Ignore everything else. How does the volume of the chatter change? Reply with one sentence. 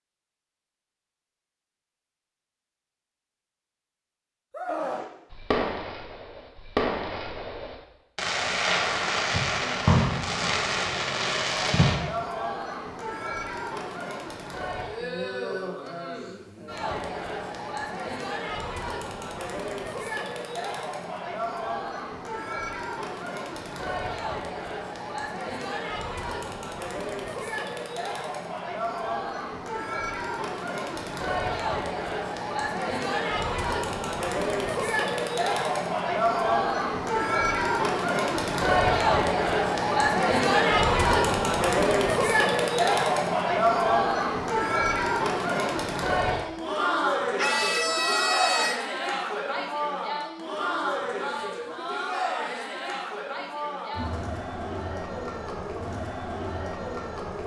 The loudness of the chatter goes up, then down.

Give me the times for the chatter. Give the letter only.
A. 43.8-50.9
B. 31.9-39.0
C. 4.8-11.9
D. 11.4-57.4
D.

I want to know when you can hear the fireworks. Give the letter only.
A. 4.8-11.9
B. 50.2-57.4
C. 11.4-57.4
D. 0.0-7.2
A.